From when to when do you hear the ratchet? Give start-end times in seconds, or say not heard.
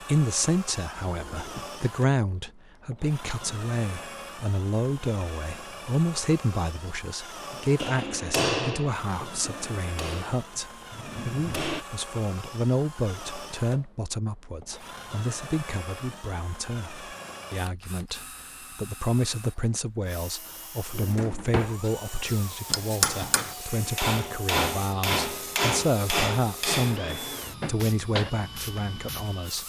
not heard.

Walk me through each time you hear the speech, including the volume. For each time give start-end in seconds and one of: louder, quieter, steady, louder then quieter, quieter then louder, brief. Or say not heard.
0.1-29.6 steady.